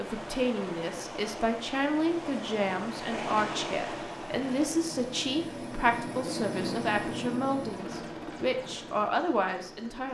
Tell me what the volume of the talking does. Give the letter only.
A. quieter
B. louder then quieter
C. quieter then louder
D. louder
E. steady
E.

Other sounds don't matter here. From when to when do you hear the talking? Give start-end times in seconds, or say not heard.
0.0-10.0.